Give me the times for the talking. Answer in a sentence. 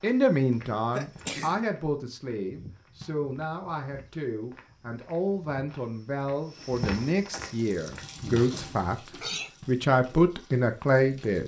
The talking can be heard from 0.0 to 11.4 s.